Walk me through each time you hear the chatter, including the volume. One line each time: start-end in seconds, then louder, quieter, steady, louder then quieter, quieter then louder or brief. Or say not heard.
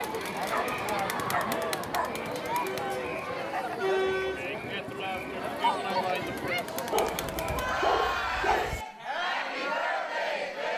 0.0-10.7 steady.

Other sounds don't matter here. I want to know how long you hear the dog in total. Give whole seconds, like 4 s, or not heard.
4 s.